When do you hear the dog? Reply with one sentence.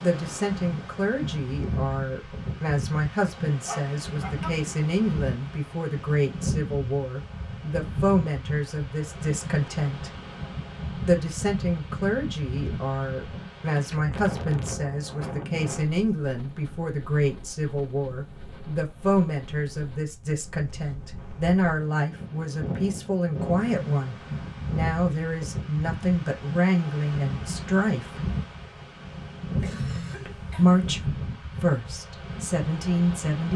You can hear the dog from 3.6 to 4.5 s.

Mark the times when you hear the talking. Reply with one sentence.
You can hear the talking from 0.0 to 10.1 s, from 11.1 to 28.2 s and from 30.2 to 33.5 s.